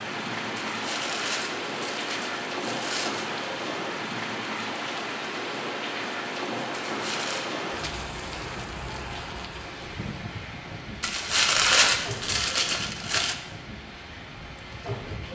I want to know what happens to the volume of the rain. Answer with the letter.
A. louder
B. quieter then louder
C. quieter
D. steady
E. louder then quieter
C.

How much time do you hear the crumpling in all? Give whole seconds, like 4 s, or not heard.
6 s.